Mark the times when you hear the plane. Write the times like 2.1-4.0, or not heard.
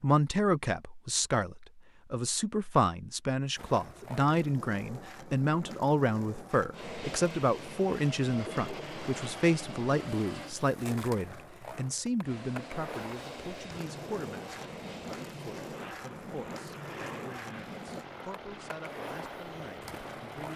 6.7-10.6, 12.2-20.5.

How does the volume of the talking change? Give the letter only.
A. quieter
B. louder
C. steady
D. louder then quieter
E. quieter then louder
A.